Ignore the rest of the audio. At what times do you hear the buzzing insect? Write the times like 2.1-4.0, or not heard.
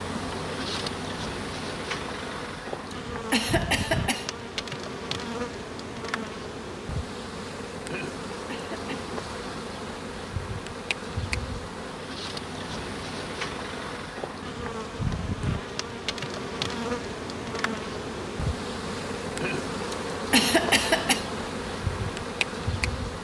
0.0-23.1.